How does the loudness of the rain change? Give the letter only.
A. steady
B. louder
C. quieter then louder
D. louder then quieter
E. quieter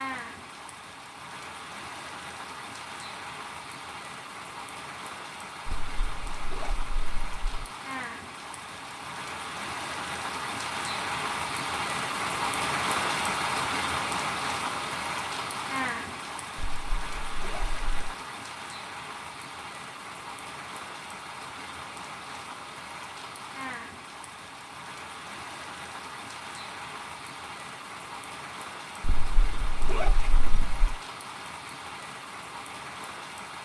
D.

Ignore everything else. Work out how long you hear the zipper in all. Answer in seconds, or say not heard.
5 s.